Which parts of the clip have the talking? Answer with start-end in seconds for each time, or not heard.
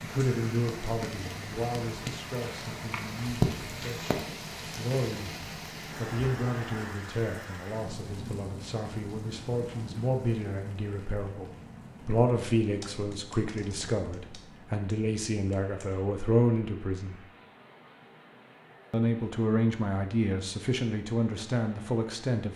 0.0-17.2, 18.9-22.5.